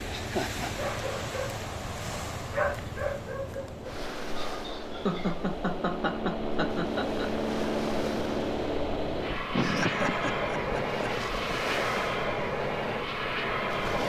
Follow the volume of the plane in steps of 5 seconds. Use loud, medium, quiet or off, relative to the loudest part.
quiet, loud, loud.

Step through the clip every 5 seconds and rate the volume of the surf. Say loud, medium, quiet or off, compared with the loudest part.
loud, medium, loud.